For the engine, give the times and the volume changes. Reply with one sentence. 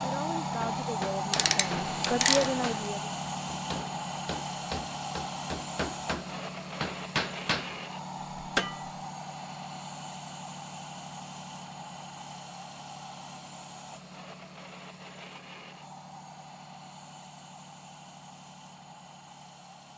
The engine can be heard from 0.0 to 19.9 s, getting quieter.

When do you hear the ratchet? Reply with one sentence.
You can hear the ratchet from 1.3 to 2.8 s.